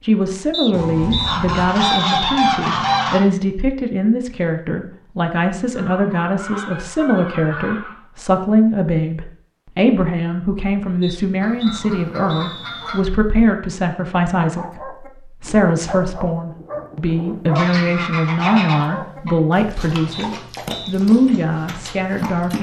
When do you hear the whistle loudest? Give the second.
2 s.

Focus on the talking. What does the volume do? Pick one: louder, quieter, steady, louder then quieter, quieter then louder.
steady.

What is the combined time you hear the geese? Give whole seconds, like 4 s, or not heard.
8 s.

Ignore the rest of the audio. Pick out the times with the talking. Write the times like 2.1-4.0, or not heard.
0.0-22.5.